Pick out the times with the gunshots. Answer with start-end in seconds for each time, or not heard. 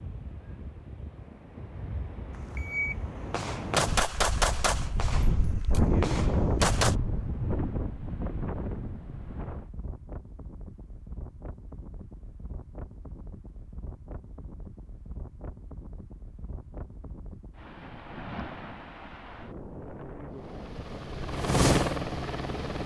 2.5-7.0.